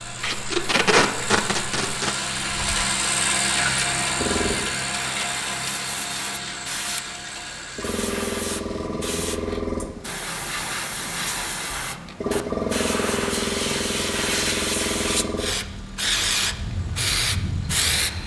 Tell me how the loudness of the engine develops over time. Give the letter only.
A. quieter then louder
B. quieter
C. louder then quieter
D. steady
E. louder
B.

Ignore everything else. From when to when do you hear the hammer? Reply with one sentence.
You can't hear the hammer here.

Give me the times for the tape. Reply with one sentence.
You can hear the tape from 0.2 to 2.1 s.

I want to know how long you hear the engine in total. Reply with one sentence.
The engine can be heard for 18 seconds in total.